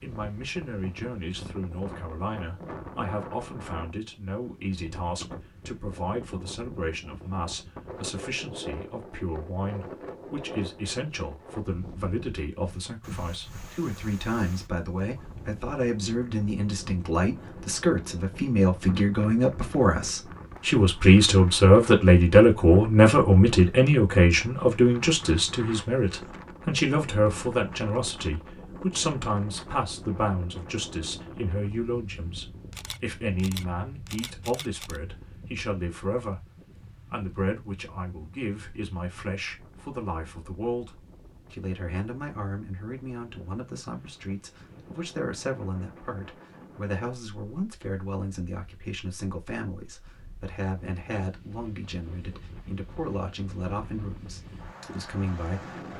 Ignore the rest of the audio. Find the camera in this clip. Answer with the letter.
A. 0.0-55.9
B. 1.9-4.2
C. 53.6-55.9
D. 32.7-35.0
D.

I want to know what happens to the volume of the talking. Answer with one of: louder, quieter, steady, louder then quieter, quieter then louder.
louder then quieter.